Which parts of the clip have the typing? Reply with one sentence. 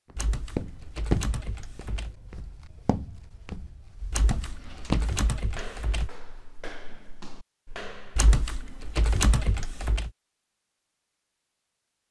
You can hear the typing from 0.1 to 2.1 s, from 4.1 to 6.1 s and from 8.2 to 10.1 s.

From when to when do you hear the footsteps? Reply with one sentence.
You can hear the footsteps from 0.1 to 8.3 s.